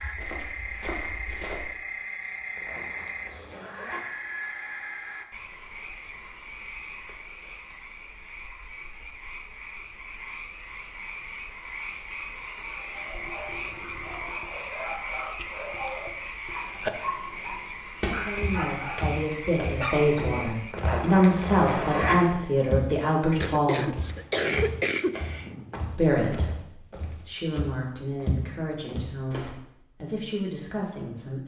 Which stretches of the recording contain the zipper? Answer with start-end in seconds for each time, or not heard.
2.5-4.0, 20.7-22.2.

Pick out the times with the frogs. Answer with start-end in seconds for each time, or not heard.
0.0-20.9.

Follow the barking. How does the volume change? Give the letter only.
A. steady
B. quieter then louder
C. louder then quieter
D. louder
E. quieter
D.